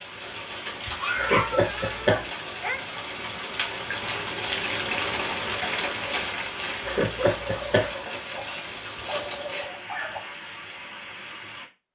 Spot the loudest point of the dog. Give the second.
1 s.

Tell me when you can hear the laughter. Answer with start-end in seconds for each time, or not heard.
1.1-2.2, 6.8-7.9.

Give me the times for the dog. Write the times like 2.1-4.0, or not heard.
0.8-2.8, 7.4-10.2.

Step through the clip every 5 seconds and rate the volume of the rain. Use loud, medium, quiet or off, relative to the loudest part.
loud, loud, medium.